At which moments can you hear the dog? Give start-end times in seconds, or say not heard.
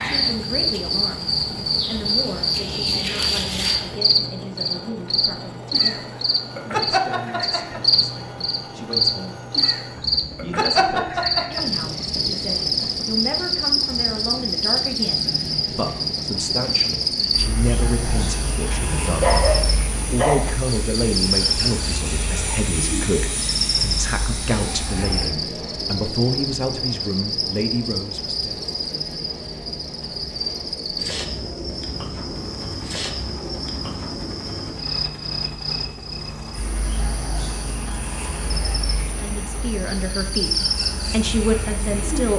19.2-20.6.